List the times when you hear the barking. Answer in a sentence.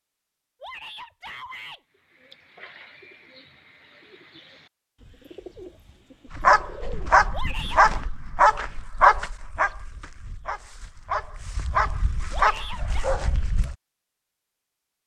You can hear the barking from 6.3 to 13.8 s.